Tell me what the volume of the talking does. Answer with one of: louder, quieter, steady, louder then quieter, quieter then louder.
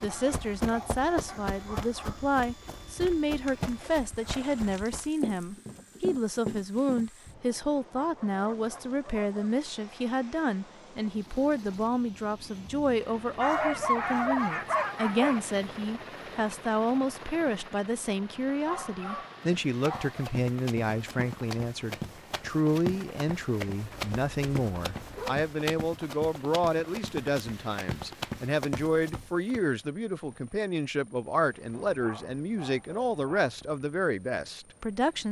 steady.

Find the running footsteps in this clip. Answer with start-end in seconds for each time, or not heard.
0.0-7.4, 19.4-29.6.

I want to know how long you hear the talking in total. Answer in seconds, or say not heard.
35 s.